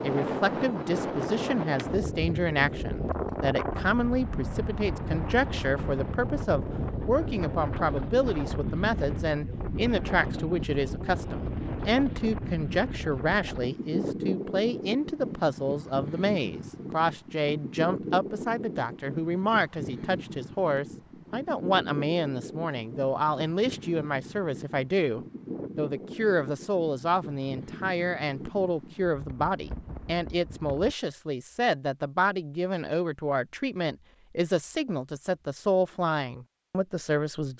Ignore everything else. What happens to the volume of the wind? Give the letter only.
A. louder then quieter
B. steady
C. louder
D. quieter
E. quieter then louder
D.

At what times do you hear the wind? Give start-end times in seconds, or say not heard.
0.0-30.9.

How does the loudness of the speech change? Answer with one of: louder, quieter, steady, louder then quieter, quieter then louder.
steady.